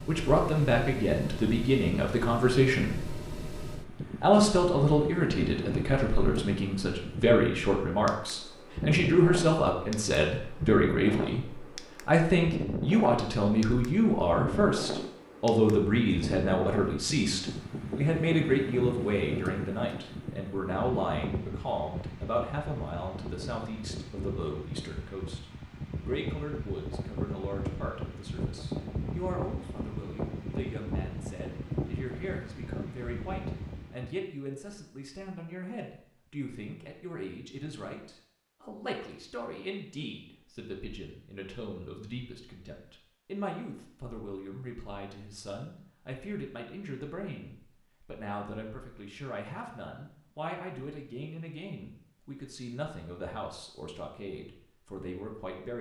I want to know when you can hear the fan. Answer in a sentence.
You can hear the fan from 0.0 to 34.1 s.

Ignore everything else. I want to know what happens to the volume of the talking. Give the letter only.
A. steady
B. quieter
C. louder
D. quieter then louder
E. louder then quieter
B.